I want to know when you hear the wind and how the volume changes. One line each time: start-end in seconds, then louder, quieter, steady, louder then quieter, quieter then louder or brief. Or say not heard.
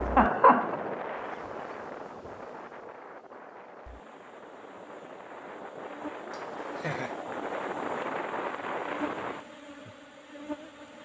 0.0-9.4 quieter then louder.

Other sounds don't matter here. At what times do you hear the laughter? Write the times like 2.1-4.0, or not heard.
0.1-0.8, 6.3-7.2.